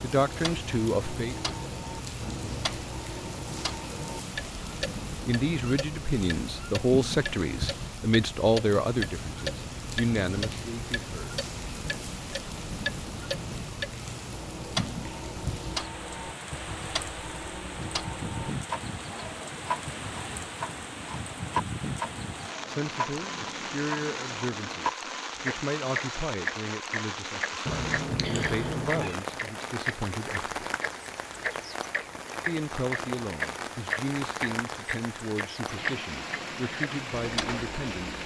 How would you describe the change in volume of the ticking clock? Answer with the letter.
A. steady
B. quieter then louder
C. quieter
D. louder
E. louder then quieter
D.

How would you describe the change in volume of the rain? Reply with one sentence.
The volume of the rain stays about the same.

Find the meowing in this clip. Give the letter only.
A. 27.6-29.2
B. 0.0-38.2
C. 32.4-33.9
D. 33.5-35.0
A.